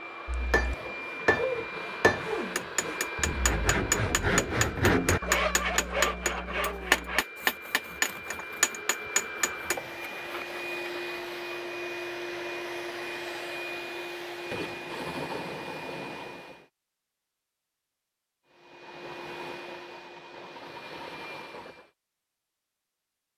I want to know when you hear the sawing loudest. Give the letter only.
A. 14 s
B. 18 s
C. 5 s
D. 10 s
C.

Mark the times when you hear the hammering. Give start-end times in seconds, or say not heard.
0.2-9.8.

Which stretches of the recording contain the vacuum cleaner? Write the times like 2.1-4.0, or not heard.
0.0-16.6, 18.4-21.9.